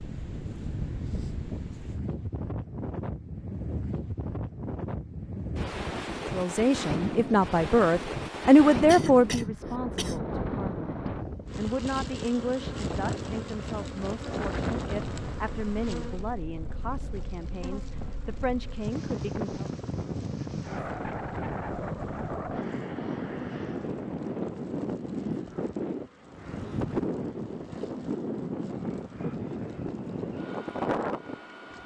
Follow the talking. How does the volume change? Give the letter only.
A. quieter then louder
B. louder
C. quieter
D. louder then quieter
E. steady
C.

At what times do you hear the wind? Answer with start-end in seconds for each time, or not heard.
0.0-31.8.